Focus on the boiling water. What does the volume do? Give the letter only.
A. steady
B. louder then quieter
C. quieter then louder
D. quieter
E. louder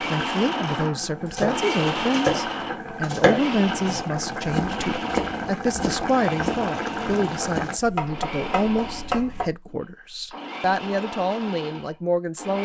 E.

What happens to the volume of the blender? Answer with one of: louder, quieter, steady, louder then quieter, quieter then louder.
quieter.